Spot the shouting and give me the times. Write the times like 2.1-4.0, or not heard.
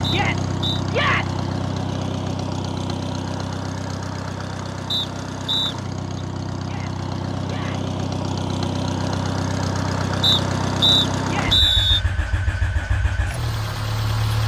0.1-1.4, 6.6-7.9, 11.2-11.7.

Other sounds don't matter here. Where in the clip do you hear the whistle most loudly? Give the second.
12 s.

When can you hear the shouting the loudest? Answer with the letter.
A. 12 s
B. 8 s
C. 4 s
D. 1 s
D.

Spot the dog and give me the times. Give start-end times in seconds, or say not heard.
not heard.